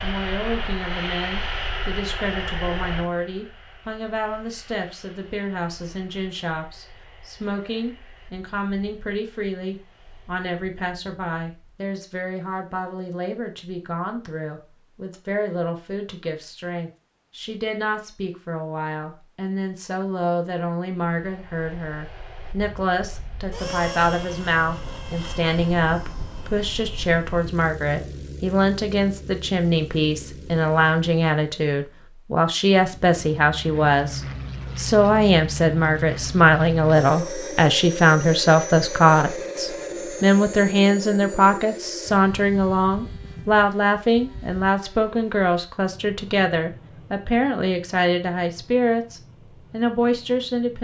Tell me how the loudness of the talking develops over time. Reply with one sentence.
The loudness of the talking goes up.